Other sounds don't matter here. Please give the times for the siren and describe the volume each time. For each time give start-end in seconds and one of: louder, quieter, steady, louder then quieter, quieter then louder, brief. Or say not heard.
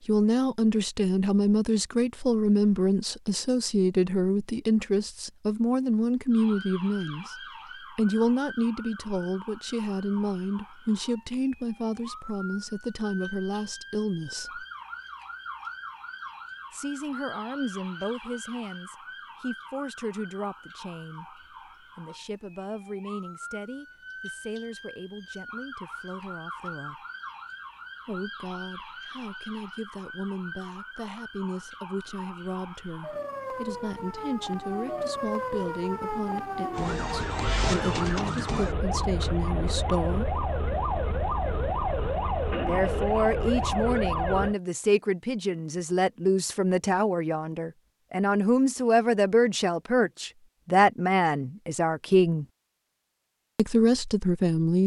6.3-44.5 louder.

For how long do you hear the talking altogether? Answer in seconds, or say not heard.
48 s.